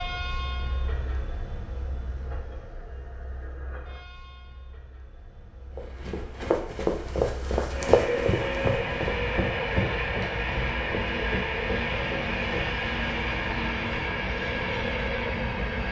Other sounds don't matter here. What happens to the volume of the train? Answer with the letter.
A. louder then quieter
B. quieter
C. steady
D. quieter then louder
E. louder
D.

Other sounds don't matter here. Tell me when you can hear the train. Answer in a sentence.
You can hear the train from 0.0 to 15.8 s.